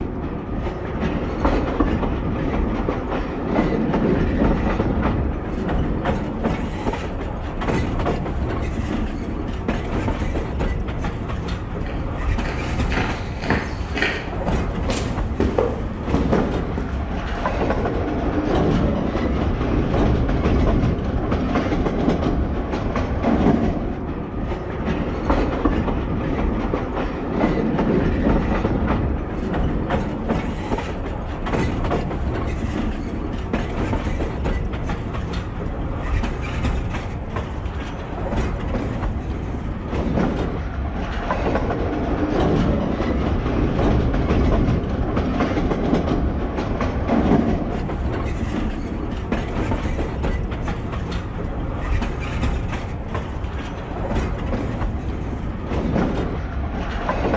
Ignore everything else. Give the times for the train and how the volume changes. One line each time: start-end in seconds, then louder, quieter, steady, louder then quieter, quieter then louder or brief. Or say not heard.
0.0-57.3 steady.